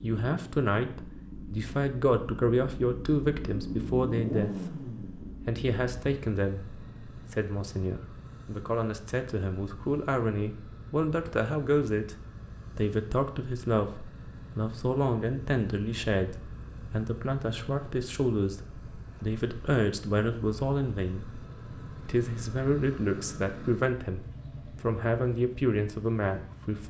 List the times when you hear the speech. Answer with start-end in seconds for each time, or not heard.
0.0-12.2, 12.8-21.2, 22.1-24.2, 24.8-26.8.